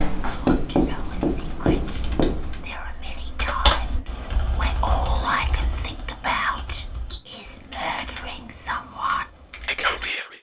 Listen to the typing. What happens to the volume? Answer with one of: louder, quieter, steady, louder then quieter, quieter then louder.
louder then quieter.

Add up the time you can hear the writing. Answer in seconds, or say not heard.
3 s.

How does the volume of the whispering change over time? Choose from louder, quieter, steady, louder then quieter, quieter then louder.
louder.